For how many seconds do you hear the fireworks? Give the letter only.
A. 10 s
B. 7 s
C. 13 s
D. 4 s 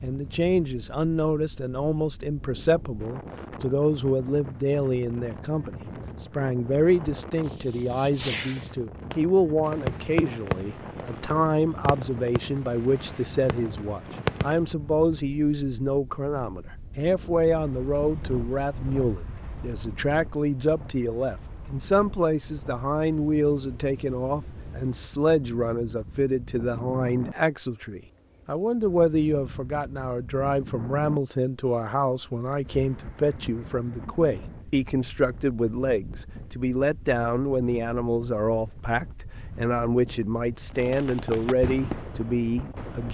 A.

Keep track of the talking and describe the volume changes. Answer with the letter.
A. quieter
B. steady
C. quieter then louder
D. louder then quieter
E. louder
B.